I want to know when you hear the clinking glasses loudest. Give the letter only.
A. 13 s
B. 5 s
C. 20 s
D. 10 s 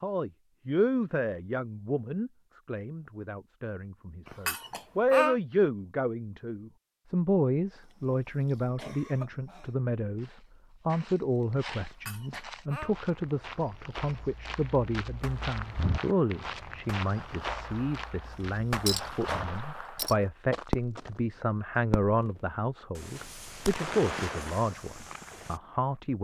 B.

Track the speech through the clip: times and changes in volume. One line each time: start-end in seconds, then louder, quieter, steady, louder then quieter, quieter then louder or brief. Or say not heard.
0.0-26.2 steady.